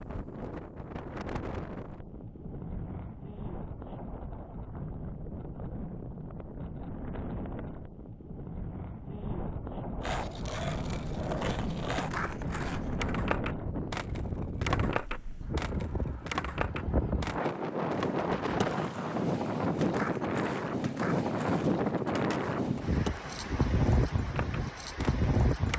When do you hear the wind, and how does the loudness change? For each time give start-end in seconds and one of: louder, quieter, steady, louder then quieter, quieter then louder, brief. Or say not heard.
0.0-25.7 louder.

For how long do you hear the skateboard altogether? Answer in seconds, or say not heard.
16 s.